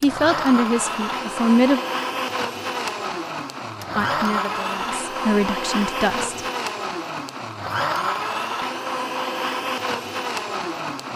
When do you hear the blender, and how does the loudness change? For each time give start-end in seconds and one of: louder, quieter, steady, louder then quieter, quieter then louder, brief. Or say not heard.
0.0-11.1 steady.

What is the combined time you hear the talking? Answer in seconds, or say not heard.
4 s.